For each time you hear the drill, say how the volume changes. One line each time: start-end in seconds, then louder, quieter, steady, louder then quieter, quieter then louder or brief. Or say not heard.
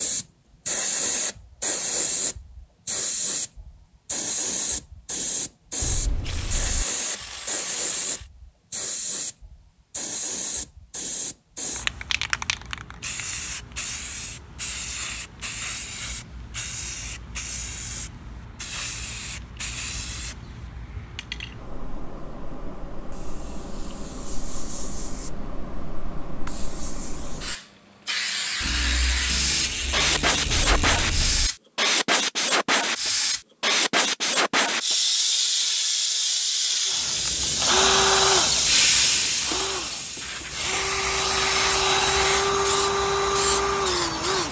36.9-44.4 quieter then louder.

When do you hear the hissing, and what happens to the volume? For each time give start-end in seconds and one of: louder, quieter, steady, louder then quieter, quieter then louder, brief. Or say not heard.
0.0-44.4 quieter then louder.